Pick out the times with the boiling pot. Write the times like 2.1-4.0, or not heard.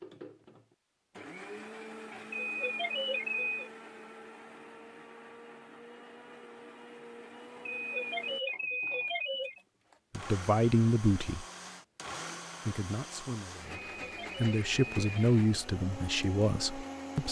not heard.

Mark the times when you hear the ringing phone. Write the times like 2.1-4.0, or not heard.
2.3-3.7, 7.7-9.6, 13.9-15.3.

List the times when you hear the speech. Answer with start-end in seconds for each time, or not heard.
10.2-11.4, 12.7-17.2.